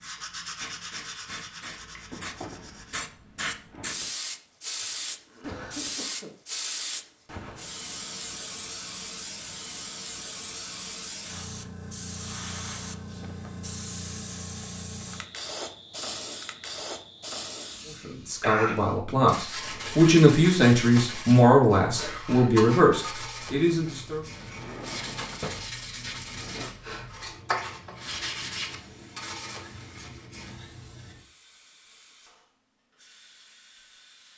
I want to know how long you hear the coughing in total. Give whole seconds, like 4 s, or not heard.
2 s.